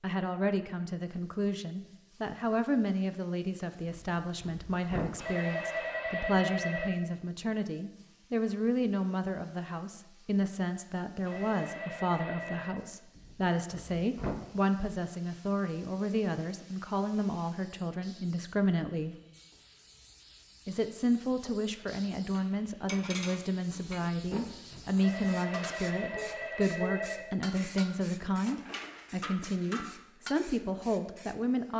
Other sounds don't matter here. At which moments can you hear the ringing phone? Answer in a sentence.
You can hear the ringing phone from 5.2 to 6.9 s, from 11.2 to 12.8 s and from 24.9 to 27.7 s.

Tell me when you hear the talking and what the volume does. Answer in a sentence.
The talking can be heard from 0.0 to 19.1 s, at a steady volume; and from 20.6 to 31.7 s, at a steady volume.